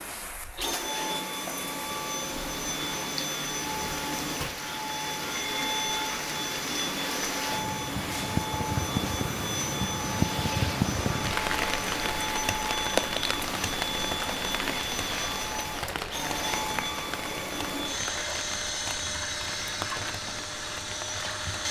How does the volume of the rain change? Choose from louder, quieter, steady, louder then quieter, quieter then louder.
louder then quieter.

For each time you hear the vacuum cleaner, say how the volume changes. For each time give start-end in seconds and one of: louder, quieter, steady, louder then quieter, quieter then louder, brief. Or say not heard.
0.0-21.6 steady.